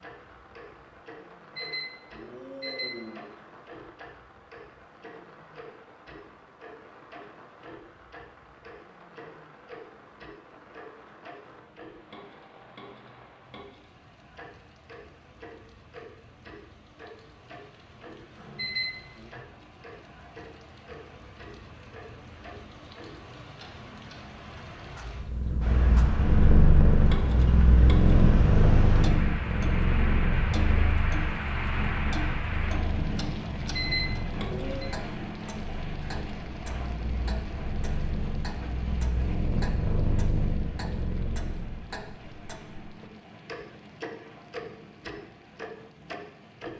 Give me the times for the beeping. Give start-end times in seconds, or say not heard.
1.6-3.2, 18.6-19.3, 33.8-34.9.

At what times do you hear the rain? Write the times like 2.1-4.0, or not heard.
0.0-46.7.